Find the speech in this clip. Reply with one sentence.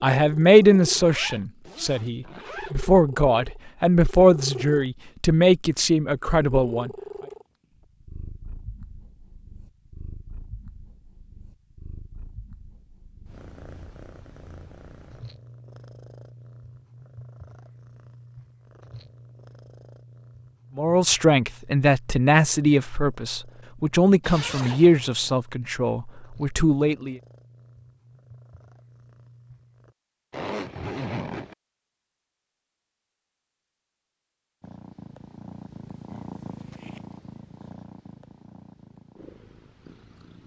The speech can be heard from 0.0 to 6.9 s and from 20.8 to 27.1 s.